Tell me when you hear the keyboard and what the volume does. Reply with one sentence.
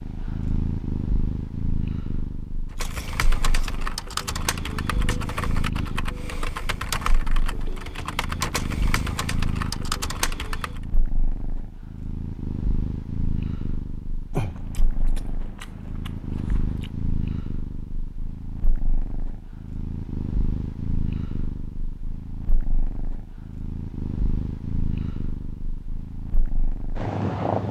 The keyboard can be heard from 2.7 to 10.8 s, at a steady volume.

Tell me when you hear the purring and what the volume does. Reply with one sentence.
You can hear the purring from 0.0 to 27.6 s, at a steady volume.